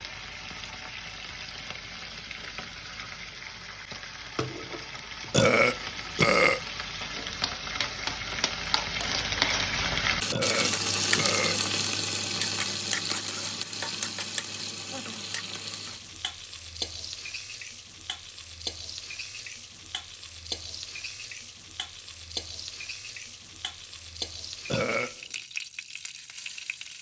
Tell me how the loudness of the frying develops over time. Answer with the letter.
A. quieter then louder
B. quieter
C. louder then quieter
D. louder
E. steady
C.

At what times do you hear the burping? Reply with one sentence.
You can hear the burping from 5.3 to 6.6 s, from 10.3 to 11.6 s and from 24.6 to 25.1 s.